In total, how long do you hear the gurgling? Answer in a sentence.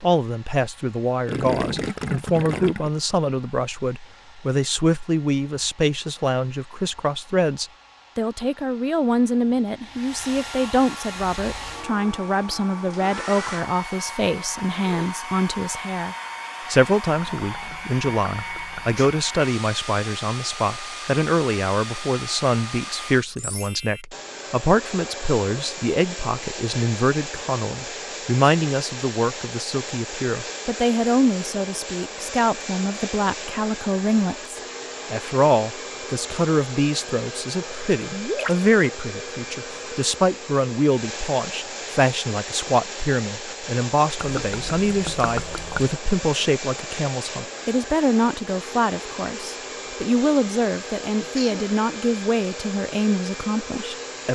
You can hear the gurgling for 6 seconds altogether.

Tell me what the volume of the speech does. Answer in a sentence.
The loudness of the speech stays about the same.